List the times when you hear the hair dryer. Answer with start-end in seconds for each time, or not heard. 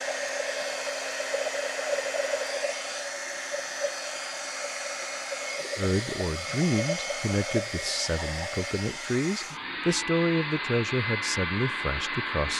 0.0-12.5.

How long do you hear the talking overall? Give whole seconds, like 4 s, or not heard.
7 s.